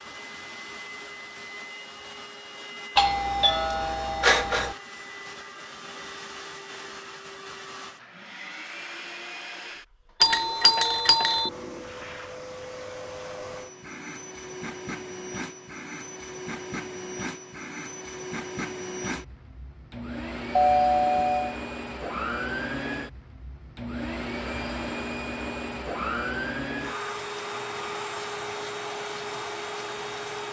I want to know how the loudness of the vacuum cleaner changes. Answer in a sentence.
The volume of the vacuum cleaner goes up.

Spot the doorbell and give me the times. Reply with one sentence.
The doorbell can be heard from 3.0 to 4.8 s, from 10.2 to 11.5 s and from 20.6 to 21.6 s.